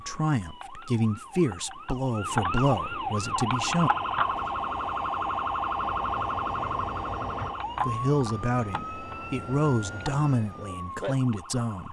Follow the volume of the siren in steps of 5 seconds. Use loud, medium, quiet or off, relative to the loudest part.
loud, loud, medium.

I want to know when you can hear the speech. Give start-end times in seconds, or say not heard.
0.0-3.9, 7.8-11.8.